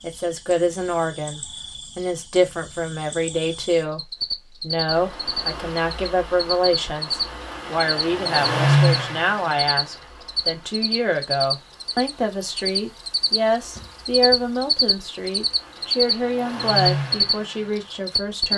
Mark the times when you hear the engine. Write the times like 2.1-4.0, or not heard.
4.9-10.6, 11.8-18.5.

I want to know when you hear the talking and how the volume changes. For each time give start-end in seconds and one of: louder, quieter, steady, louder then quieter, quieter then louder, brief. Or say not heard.
0.0-18.5 steady.